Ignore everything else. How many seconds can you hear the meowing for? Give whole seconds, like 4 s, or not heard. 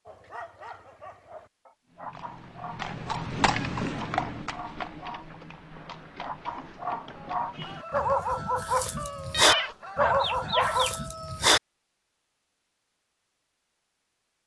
2 s.